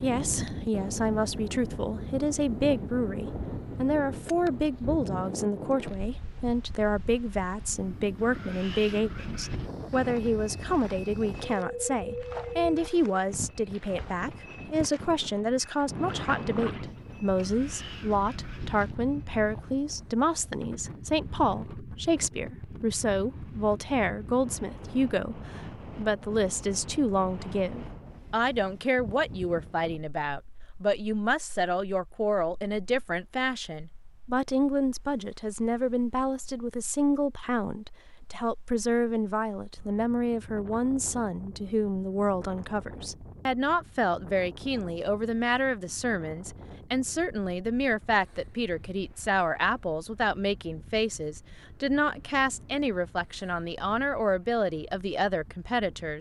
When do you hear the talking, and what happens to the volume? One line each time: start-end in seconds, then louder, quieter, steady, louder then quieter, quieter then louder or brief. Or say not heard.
0.0-56.1 steady.